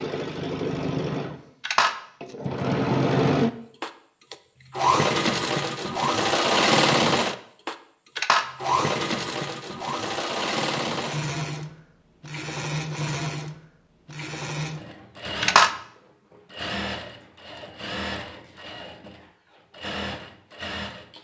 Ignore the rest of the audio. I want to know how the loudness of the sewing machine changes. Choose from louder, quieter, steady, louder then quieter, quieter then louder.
quieter.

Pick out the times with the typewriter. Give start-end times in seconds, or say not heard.
not heard.